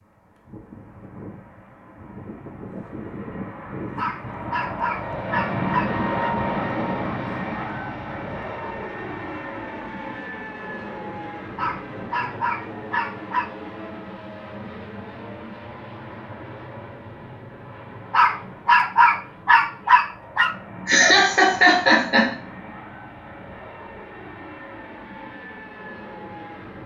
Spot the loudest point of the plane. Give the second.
6 s.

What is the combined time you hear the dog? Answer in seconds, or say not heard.
7 s.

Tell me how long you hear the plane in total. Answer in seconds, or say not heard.
27 s.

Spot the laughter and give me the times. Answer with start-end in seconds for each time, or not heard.
20.9-22.3.